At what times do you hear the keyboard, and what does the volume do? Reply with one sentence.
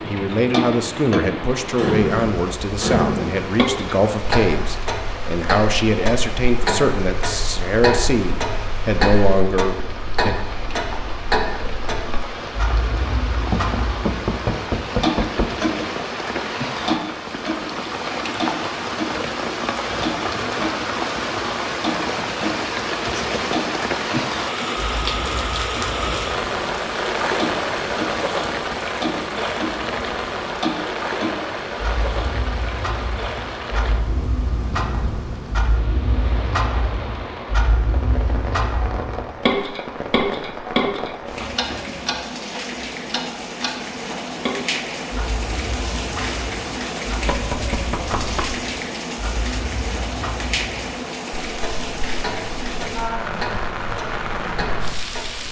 You can't hear the keyboard here.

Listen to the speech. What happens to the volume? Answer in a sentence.
The volume of the speech stays about the same.